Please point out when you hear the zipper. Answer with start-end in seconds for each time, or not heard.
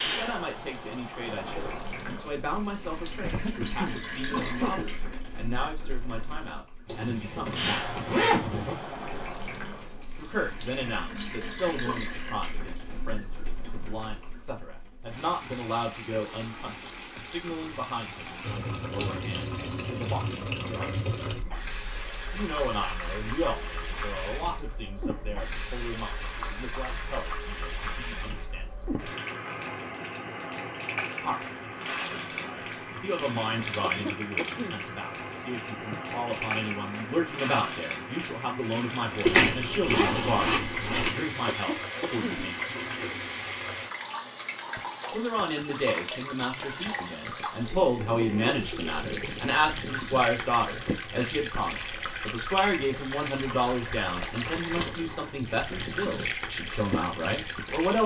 6.8-8.8, 39.2-41.1.